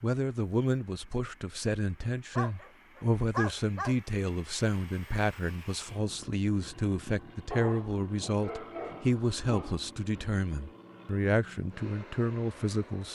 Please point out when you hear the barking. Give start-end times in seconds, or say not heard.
2.4-4.0, 7.5-10.4.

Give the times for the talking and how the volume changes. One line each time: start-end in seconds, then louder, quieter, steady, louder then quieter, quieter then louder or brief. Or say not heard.
0.0-13.1 steady.